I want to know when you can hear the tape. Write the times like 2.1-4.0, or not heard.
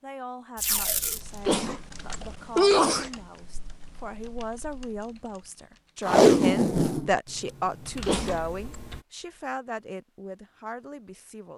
0.6-1.2, 6.0-7.1.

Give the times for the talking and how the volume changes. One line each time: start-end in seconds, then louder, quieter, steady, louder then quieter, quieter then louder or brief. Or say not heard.
0.0-11.5 louder then quieter.